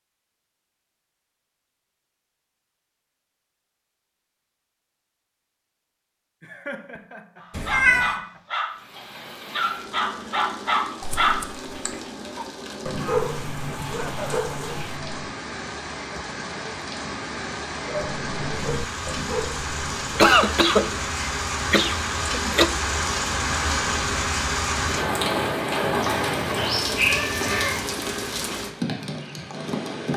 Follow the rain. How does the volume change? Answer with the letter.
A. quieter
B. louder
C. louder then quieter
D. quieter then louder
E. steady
B.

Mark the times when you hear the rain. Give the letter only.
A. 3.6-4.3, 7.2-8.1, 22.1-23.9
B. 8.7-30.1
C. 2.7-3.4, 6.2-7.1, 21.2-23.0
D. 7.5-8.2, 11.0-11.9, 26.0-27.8
B.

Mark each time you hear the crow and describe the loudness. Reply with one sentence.
The crow can't be heard in this clip.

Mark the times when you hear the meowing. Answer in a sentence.
The meowing can be heard from 7.5 to 8.2 s, from 11.0 to 11.9 s and from 26.0 to 27.8 s.